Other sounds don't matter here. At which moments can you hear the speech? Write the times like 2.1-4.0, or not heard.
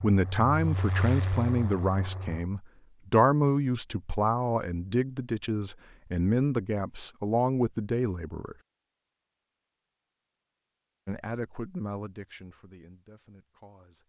0.0-8.6, 11.1-14.0.